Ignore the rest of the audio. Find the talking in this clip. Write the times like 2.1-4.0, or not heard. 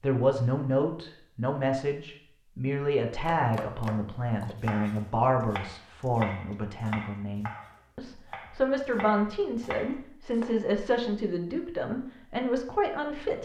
0.0-13.4.